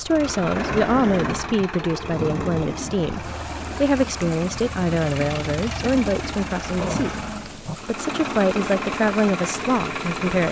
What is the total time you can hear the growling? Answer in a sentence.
The growling can be heard for 2 seconds in total.